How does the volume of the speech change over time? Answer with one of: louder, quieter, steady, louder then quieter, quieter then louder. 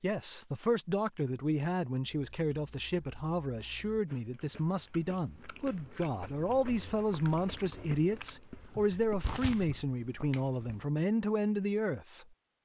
steady.